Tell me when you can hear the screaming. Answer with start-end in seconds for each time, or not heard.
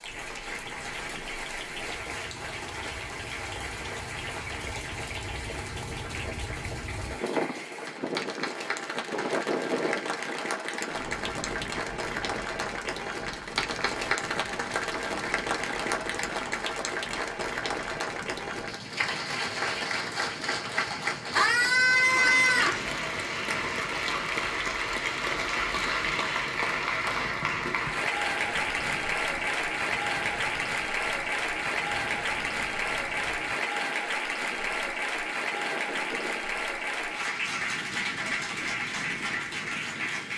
21.4-22.8.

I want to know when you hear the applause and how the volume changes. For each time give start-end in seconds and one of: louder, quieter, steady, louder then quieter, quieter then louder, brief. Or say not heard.
0.0-40.3 louder.